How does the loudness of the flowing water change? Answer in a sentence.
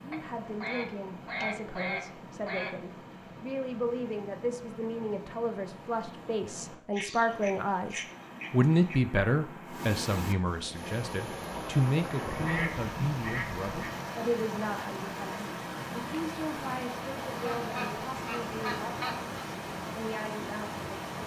The loudness of the flowing water goes up.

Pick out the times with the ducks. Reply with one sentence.
You can hear the ducks from 0.1 to 2.8 s, from 6.9 to 9.0 s, from 12.2 to 13.9 s and from 17.1 to 19.4 s.